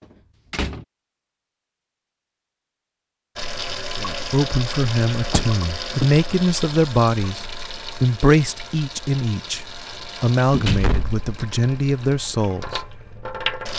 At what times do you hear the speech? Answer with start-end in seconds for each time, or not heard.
4.0-12.8.